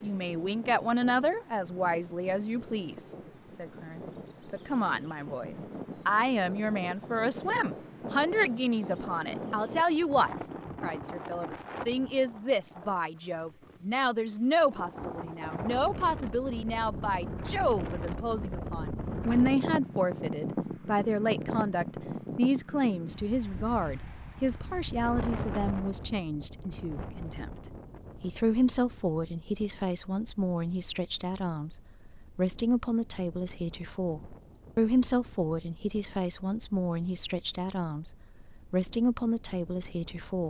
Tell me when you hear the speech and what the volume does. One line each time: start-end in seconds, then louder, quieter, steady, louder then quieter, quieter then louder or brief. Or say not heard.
0.0-40.4 steady.